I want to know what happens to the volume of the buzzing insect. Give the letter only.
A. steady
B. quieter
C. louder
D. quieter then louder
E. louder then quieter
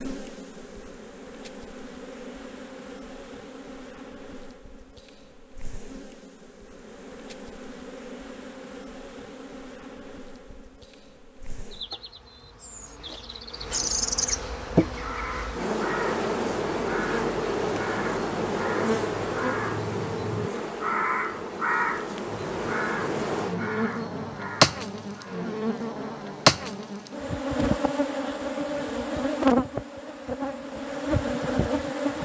C.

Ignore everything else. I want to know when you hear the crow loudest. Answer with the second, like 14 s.
22 s.